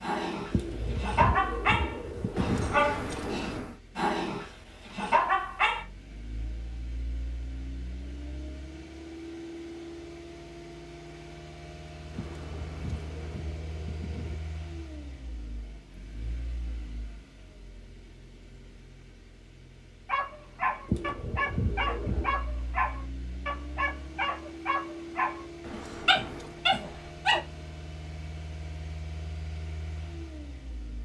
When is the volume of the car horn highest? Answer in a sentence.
The loudest moment of the car horn is at 3 seconds.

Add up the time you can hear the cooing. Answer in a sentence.
The cooing can be heard for 6 seconds in total.